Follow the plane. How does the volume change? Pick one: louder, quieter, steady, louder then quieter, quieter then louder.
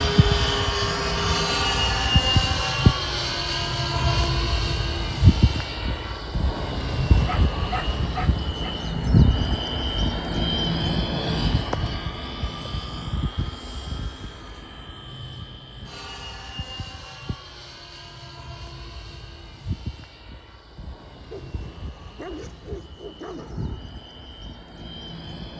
quieter.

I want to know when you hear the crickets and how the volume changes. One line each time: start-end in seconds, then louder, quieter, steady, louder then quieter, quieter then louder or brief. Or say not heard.
not heard.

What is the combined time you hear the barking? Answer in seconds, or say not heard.
4 s.